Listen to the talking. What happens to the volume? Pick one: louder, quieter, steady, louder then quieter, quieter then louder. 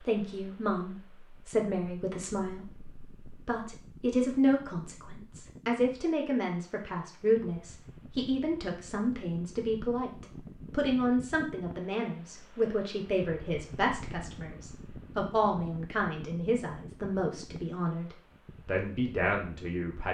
steady.